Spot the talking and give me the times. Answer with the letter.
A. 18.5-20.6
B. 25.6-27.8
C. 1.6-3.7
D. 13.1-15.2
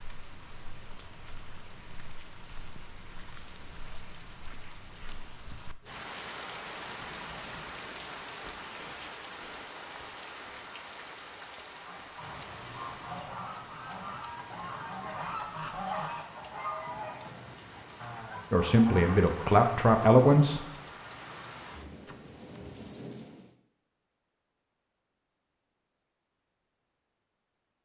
A.